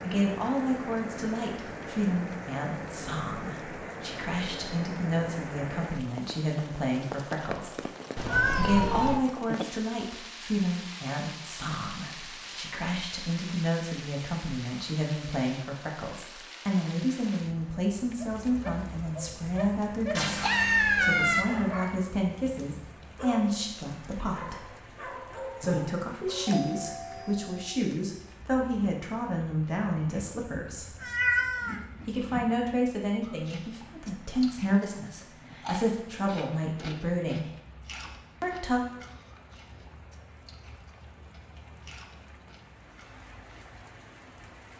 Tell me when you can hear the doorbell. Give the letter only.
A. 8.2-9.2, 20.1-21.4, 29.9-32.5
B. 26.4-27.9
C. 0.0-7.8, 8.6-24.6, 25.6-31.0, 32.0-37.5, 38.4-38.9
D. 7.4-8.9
B.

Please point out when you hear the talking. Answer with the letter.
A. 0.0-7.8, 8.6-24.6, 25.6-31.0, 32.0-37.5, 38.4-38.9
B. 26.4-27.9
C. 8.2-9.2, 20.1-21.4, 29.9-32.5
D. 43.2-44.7
A.